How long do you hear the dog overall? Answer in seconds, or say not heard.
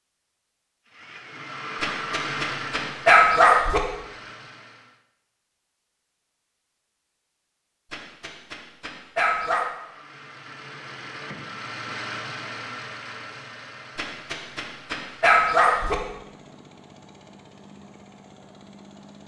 6 s.